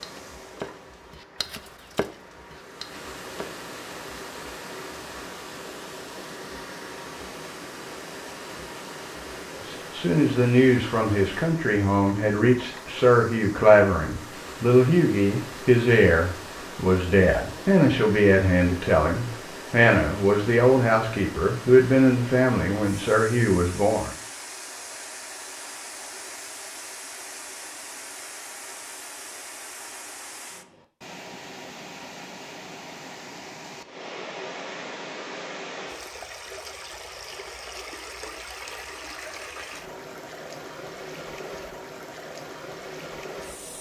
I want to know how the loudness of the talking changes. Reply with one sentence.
The volume of the talking stays about the same.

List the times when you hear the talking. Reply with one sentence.
The talking can be heard from 9.6 to 24.1 s.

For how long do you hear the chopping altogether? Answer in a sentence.
You can hear the chopping for 4 seconds altogether.